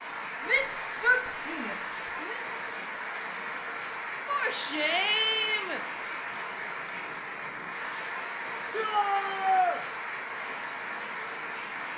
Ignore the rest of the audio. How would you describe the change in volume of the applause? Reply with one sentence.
The loudness of the applause stays about the same.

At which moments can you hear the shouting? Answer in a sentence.
You can hear the shouting from 0.5 to 2.4 s, from 4.2 to 5.8 s and from 8.7 to 9.8 s.